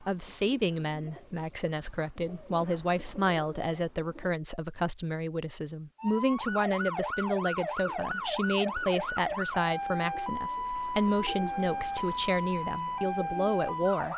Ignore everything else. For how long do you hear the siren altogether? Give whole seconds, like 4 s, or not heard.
8 s.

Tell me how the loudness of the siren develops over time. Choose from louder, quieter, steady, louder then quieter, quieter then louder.
steady.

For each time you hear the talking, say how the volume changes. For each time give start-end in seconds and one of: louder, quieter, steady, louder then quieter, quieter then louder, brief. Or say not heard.
0.0-14.1 steady.